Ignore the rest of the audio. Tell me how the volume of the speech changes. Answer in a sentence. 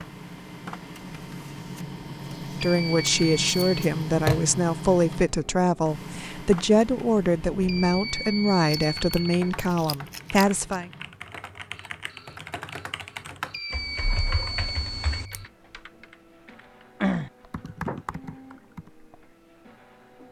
The volume of the speech stays about the same.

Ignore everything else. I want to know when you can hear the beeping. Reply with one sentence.
You can hear the beeping from 2.6 to 3.9 s, from 7.7 to 9.6 s and from 13.5 to 15.4 s.